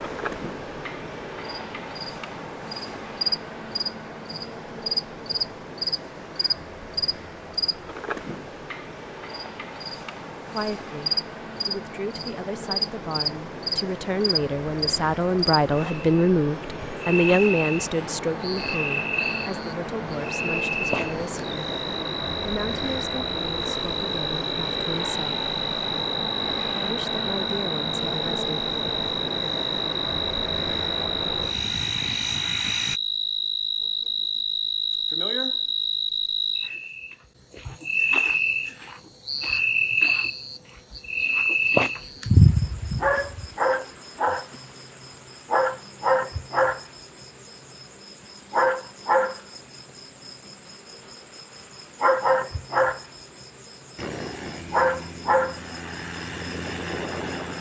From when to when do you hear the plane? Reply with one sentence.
You can hear the plane from 0.0 to 33.0 s and from 54.0 to 57.5 s.